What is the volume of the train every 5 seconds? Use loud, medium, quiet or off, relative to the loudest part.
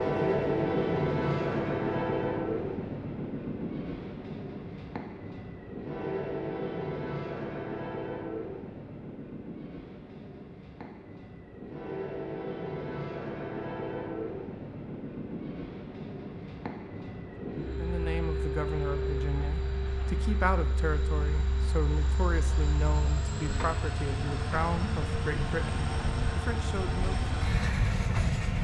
loud, medium, medium, medium, medium, loud.